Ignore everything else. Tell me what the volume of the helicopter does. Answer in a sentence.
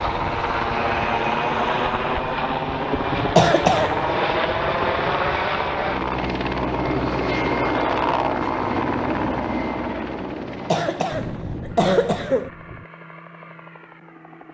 The loudness of the helicopter goes down.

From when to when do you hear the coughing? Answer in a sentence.
The coughing can be heard from 3.1 to 4.0 s and from 10.5 to 12.5 s.